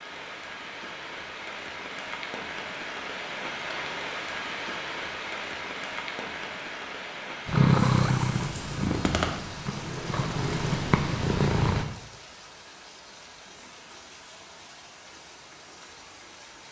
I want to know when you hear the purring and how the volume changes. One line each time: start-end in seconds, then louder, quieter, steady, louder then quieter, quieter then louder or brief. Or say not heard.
7.5-11.8 quieter then louder.